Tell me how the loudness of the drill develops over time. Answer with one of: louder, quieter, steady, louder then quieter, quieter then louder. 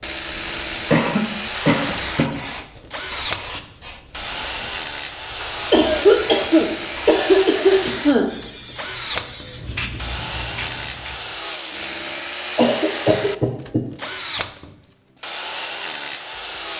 steady.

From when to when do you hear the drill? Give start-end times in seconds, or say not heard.
0.0-16.7.